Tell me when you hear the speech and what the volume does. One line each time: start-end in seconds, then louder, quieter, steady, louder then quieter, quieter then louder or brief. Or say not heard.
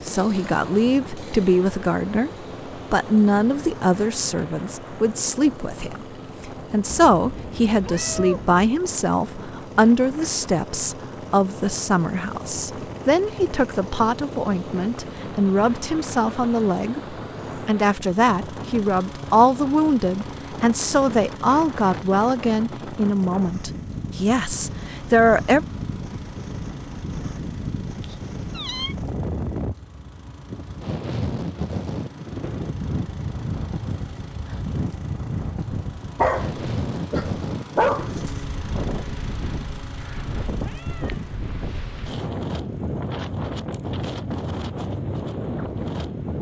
0.0-2.3 brief
2.9-25.6 steady.